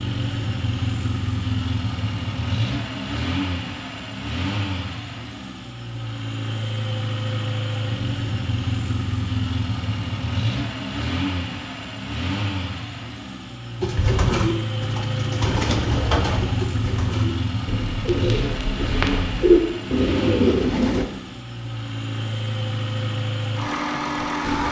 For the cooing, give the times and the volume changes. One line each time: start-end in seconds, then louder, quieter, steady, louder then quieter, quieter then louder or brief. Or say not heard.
13.8-21.1 quieter then louder.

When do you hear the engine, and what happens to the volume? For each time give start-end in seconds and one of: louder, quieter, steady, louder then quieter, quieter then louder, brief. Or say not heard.
0.0-24.6 steady.